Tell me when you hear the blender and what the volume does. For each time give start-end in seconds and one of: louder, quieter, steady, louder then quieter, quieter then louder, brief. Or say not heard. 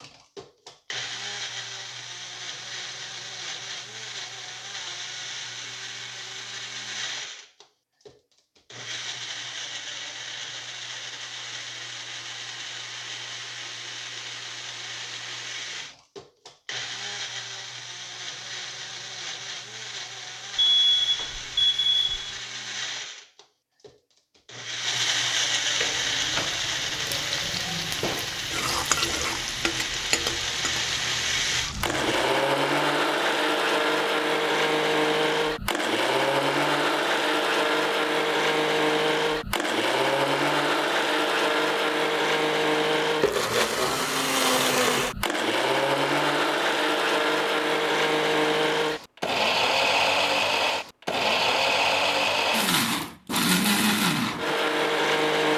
0.0-55.5 louder.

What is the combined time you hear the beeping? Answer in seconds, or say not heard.
2 s.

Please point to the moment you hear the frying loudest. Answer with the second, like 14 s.
29 s.